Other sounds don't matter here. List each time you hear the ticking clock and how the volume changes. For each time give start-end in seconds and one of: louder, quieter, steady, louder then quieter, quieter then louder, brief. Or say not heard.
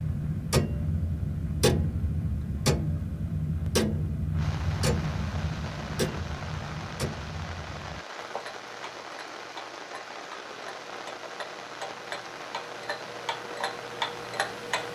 0.0-14.9 quieter then louder.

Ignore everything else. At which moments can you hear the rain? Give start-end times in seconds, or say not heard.
0.0-14.9.